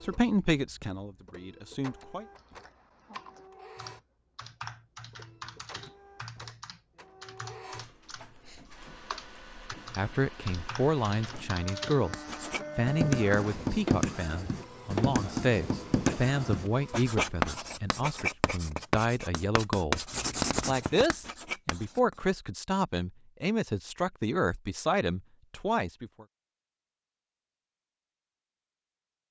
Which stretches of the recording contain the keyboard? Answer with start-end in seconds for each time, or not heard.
2.4-12.0.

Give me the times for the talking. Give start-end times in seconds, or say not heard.
0.0-2.2, 9.9-12.2, 12.8-20.1, 20.6-26.2.